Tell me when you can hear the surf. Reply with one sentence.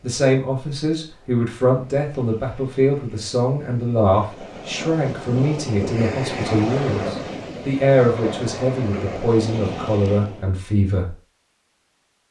You can hear the surf from 0.0 to 10.5 s.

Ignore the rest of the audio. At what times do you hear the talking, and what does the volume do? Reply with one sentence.
The talking can be heard from 0.0 to 11.1 s, at a steady volume.